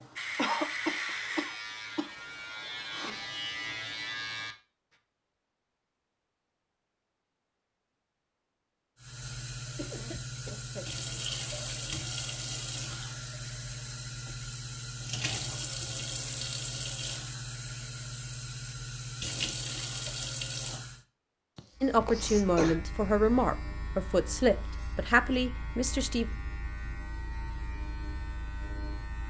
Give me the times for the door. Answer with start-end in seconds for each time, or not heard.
not heard.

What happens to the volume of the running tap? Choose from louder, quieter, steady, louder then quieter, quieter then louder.
steady.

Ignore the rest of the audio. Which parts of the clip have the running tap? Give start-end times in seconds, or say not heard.
9.0-21.0.